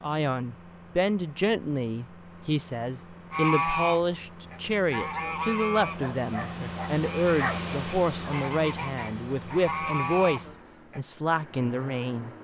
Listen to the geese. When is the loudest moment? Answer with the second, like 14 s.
4 s.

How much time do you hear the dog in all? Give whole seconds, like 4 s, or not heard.
2 s.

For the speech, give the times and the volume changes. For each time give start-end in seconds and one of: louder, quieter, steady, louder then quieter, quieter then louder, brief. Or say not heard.
0.0-12.3 steady.